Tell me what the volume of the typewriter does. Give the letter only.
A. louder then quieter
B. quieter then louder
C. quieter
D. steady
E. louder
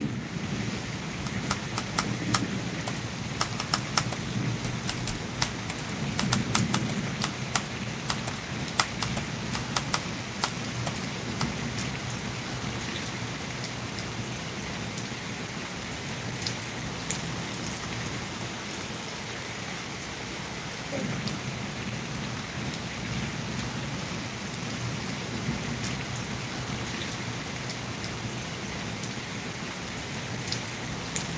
D.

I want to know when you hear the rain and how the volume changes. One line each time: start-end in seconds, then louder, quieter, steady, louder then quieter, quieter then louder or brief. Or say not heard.
0.0-31.3 steady.